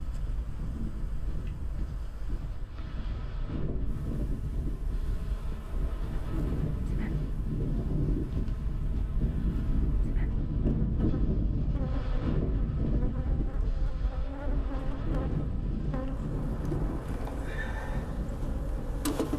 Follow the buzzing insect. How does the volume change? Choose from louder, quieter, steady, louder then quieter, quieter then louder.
louder.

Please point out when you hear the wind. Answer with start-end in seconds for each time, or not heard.
0.0-19.3.